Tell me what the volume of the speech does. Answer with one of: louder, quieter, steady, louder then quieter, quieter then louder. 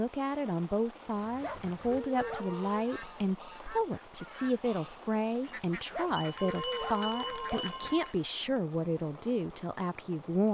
steady.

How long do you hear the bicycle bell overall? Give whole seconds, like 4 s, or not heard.
2 s.